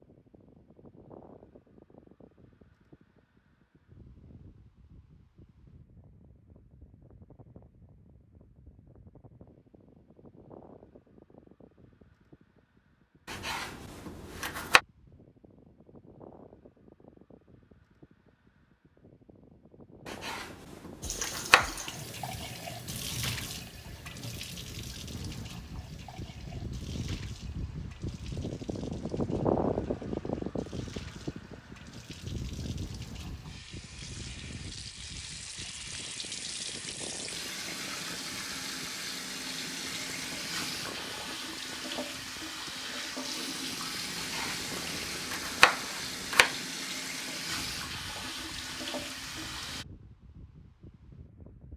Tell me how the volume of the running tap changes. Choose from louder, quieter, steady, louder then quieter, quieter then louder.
quieter then louder.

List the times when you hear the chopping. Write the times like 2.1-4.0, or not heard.
13.2-14.8, 20.1-21.9, 44.1-46.5.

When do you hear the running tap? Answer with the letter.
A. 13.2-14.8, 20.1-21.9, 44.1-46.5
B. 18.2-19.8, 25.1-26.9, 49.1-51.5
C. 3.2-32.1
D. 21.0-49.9
D.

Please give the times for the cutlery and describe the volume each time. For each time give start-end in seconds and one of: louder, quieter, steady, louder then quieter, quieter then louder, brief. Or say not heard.
not heard.